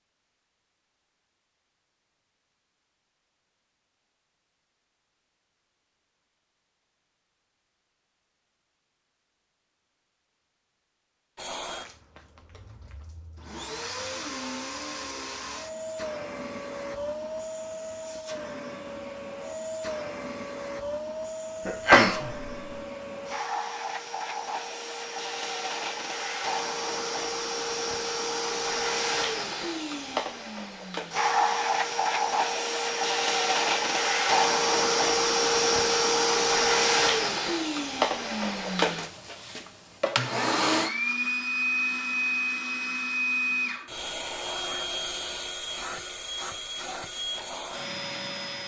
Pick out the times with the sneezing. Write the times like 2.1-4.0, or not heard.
21.6-22.6.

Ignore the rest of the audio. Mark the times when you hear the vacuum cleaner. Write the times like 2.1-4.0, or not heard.
11.3-48.6.